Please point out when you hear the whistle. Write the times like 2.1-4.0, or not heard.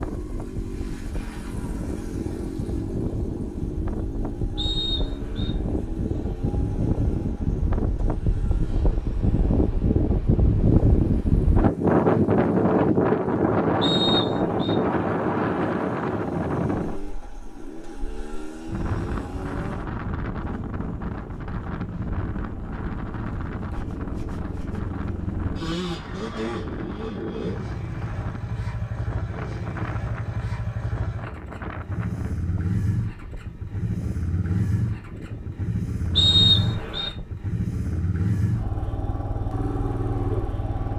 4.5-5.5, 13.8-14.8, 36.1-37.1.